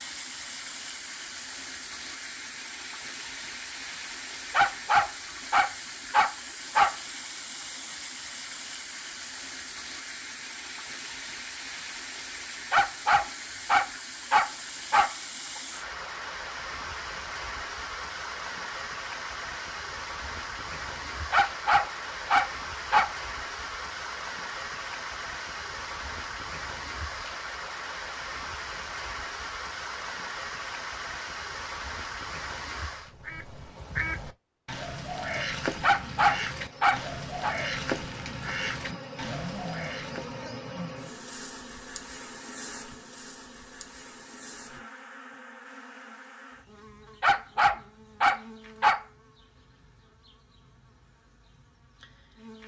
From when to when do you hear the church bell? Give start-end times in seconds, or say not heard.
not heard.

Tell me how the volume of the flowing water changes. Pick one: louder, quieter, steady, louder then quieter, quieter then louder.
steady.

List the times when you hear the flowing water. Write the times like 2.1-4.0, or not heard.
0.0-33.1.